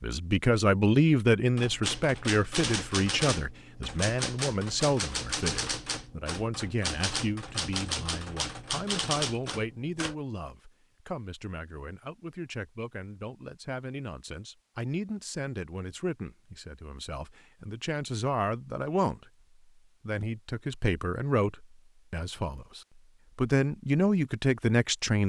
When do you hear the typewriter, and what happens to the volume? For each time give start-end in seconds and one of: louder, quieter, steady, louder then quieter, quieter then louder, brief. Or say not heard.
1.6-10.2 steady.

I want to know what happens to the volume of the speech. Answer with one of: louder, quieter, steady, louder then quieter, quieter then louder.
quieter then louder.